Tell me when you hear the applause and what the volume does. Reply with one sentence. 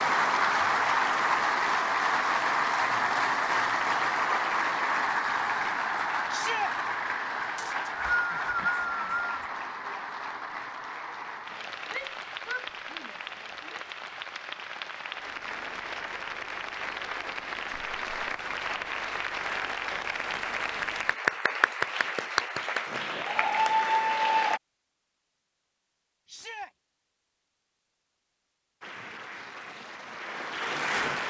You can hear the applause from 0.0 to 24.6 s, getting quieter then louder; and briefly from 28.8 to 31.2 s.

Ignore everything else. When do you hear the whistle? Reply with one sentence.
You can hear the whistle from 7.5 to 9.4 s.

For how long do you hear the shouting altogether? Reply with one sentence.
You can hear the shouting for 3 seconds altogether.